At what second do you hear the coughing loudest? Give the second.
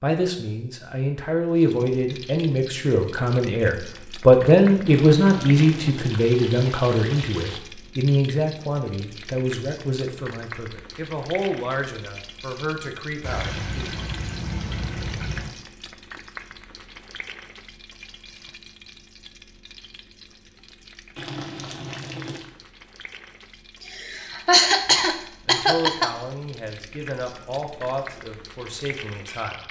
25 s.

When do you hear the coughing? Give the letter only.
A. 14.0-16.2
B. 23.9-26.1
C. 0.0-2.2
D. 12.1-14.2
B.